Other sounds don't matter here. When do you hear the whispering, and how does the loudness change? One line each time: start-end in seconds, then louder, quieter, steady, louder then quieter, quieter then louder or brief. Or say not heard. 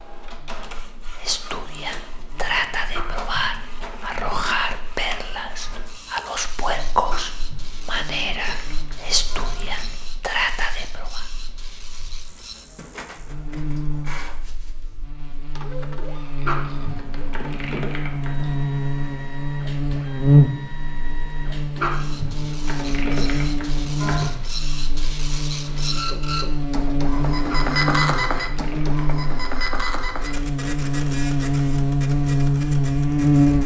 1.1-11.2 steady.